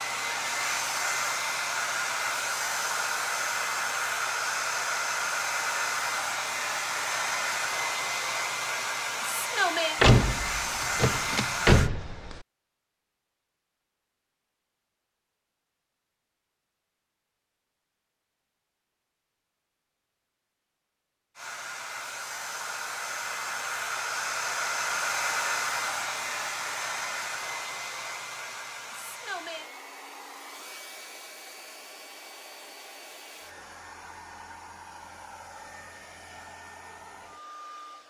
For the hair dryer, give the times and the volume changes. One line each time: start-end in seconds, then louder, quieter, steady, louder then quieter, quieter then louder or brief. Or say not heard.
0.0-11.9 steady
21.4-38.0 quieter.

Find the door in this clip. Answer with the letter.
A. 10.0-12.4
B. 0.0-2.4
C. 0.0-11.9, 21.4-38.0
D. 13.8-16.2
A.